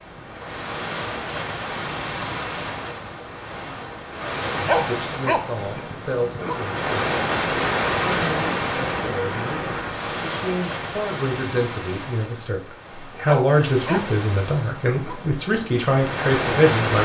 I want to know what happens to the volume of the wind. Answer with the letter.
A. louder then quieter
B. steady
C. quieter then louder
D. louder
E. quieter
A.